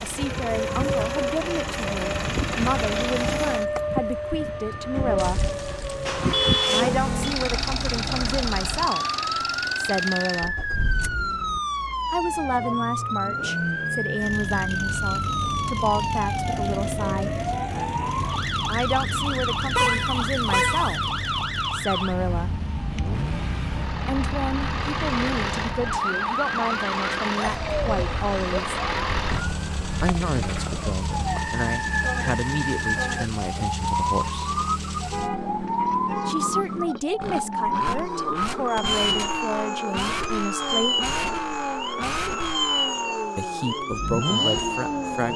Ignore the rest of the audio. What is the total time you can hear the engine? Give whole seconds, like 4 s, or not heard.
45 s.